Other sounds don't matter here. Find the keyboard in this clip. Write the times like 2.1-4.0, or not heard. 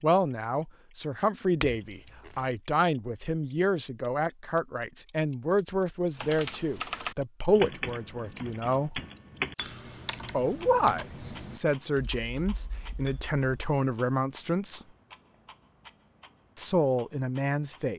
6.2-13.8.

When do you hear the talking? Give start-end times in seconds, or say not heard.
0.0-9.0, 10.3-14.8, 16.6-17.9.